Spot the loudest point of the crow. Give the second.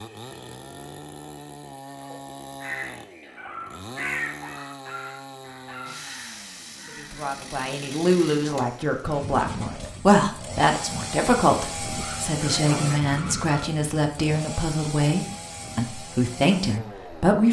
4 s.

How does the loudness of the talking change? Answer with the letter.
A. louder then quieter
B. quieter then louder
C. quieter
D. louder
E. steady
E.